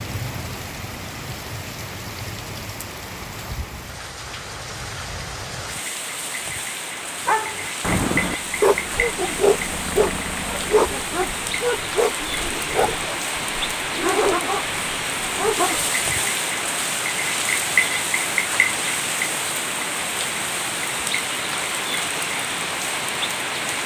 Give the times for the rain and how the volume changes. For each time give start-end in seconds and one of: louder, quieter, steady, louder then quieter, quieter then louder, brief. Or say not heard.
0.0-23.8 louder.